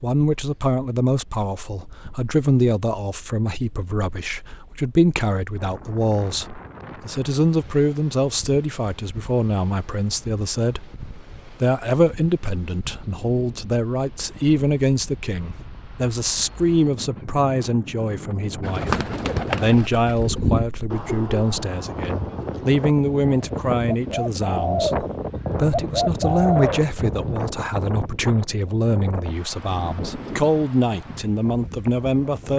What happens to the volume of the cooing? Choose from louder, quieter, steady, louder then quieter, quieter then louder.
quieter then louder.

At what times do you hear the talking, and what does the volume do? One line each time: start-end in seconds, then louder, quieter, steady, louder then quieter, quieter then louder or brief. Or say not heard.
0.0-32.5 steady.